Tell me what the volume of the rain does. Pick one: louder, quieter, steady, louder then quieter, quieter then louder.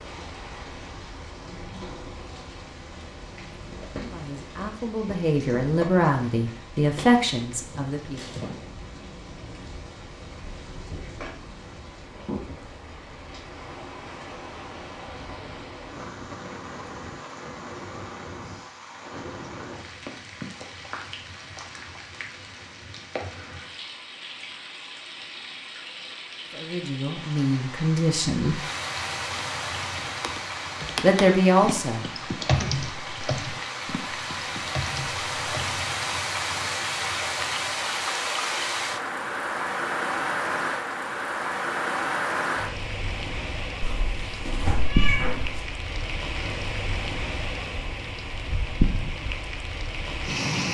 louder.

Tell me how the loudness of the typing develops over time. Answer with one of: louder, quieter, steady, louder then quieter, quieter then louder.
louder then quieter.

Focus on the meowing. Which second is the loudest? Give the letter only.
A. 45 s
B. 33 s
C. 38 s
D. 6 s
A.